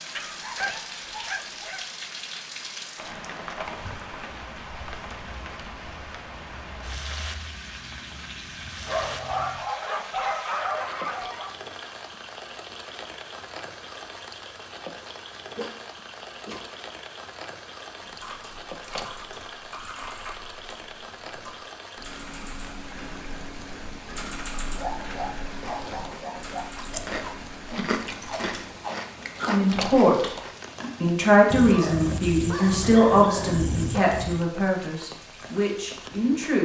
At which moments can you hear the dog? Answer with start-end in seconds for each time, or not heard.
0.1-1.9, 8.8-11.5, 15.6-16.6, 24.8-26.7, 31.5-34.5.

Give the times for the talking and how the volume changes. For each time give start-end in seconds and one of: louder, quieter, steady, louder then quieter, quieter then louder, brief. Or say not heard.
29.4-30.3 brief
31.0-36.6 quieter.